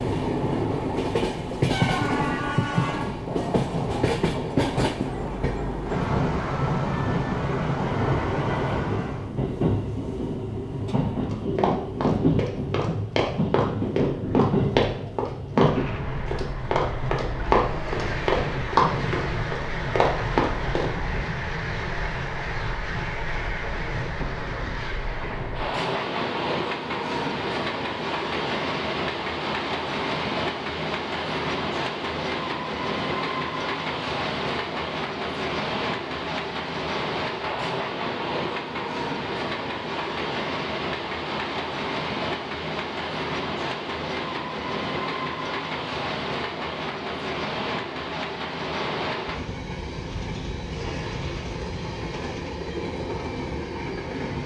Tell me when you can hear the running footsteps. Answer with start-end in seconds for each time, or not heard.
11.3-20.9.